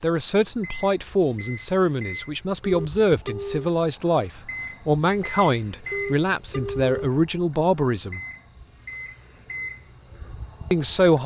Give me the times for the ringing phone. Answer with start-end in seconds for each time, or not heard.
2.6-3.7, 5.9-7.0.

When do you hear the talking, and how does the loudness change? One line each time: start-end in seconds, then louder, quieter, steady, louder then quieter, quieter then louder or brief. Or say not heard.
0.0-8.2 steady
10.7-11.2 brief.